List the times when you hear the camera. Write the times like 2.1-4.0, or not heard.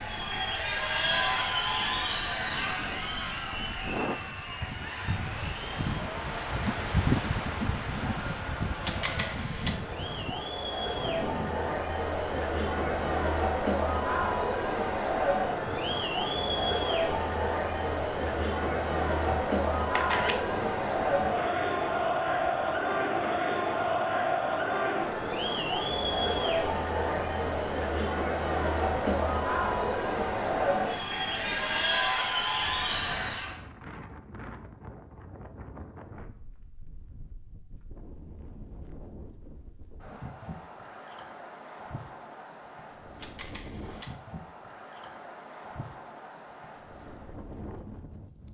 8.8-9.8, 19.9-20.4, 43.2-44.1.